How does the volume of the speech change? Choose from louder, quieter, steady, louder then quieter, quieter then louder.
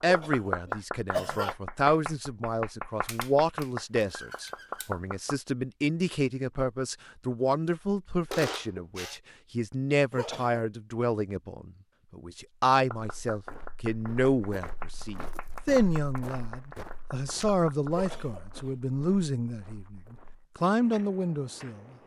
steady.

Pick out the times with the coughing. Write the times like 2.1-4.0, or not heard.
0.1-1.6, 10.1-10.7, 17.9-18.6.